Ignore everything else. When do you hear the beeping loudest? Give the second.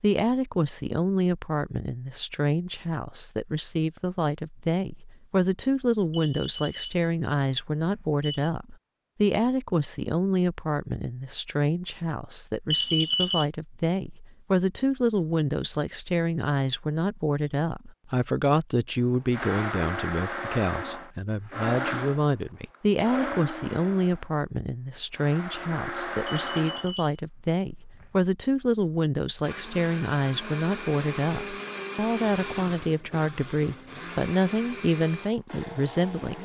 13 s.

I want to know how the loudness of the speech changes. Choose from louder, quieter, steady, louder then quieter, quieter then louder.
steady.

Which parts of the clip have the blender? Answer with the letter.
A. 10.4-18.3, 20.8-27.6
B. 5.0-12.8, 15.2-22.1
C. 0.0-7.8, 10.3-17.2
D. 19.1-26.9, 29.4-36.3
D.